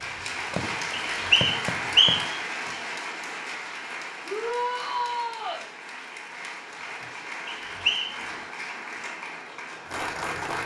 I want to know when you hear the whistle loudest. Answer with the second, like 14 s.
2 s.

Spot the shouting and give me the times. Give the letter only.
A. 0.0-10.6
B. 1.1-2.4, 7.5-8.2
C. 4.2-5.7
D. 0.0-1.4
C.